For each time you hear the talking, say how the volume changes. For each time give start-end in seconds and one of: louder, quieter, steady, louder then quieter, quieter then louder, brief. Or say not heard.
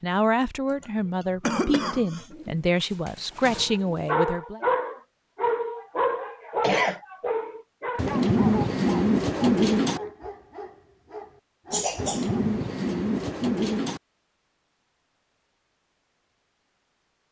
0.0-4.6 steady.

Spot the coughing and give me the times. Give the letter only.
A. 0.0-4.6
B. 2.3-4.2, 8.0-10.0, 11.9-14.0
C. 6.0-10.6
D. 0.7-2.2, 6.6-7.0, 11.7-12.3
D.